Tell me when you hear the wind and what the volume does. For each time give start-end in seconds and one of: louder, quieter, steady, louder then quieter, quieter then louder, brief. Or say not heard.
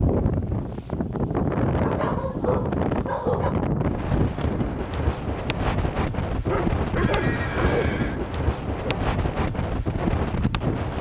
0.0-10.9 steady.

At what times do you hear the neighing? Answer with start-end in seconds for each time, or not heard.
7.0-8.2.